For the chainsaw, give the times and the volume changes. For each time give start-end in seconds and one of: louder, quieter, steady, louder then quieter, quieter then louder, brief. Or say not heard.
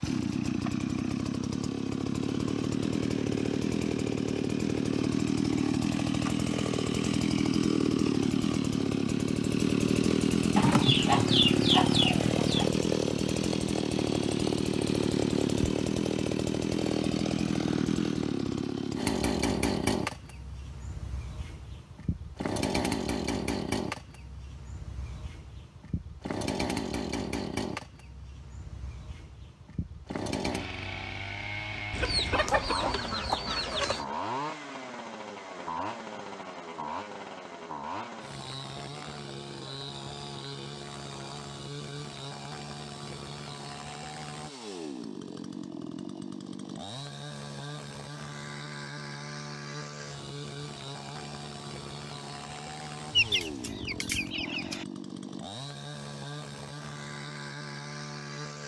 0.0-58.6 quieter.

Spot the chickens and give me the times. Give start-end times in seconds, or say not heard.
10.6-12.7, 31.9-34.0, 53.1-54.9.